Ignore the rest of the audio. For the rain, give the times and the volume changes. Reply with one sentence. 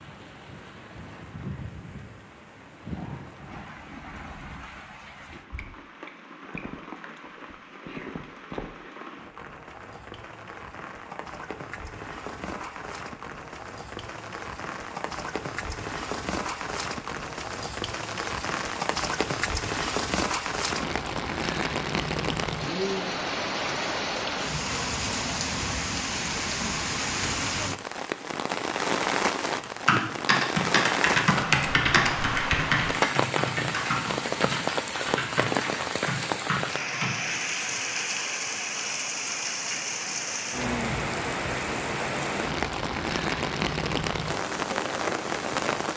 You can hear the rain from 0.0 to 45.9 s, getting louder.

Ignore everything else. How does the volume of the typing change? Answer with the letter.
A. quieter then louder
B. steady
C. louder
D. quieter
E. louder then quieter
D.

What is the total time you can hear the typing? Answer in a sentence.
The typing can be heard for 8 seconds in total.